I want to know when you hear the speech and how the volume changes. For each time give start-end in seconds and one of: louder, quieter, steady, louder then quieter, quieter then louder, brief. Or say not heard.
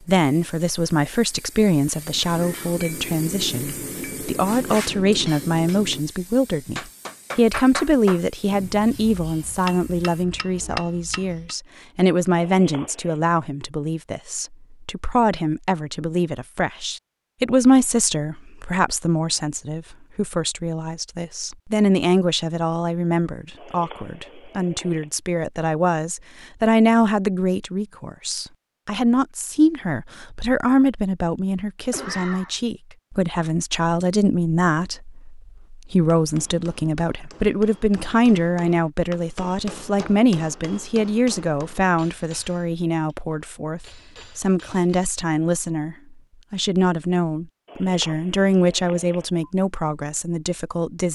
0.1-51.0 steady.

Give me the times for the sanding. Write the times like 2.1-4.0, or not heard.
not heard.